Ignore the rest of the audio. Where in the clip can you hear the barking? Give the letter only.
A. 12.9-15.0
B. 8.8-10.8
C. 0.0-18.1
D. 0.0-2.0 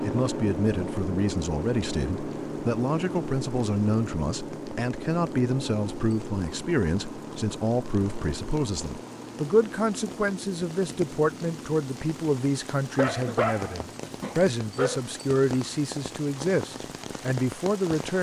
A.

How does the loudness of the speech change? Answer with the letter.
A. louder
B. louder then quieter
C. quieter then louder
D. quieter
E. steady
E.